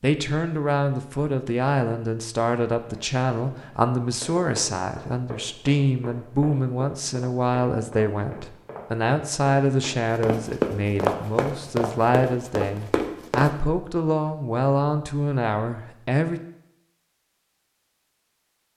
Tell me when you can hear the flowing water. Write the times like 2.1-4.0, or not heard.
not heard.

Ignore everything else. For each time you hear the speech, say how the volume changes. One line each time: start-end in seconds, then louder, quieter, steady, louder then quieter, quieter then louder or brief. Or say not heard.
0.0-16.4 steady.